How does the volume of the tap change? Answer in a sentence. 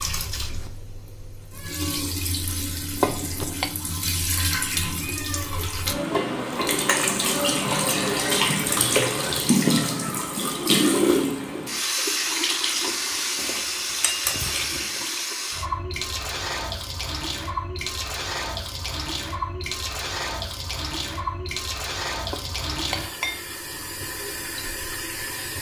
The volume of the tap goes up, then down.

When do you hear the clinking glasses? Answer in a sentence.
The clinking glasses can be heard from 3.0 to 3.7 s, from 13.3 to 15.1 s and from 22.3 to 23.9 s.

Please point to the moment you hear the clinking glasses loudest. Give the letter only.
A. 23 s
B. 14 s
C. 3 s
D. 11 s
C.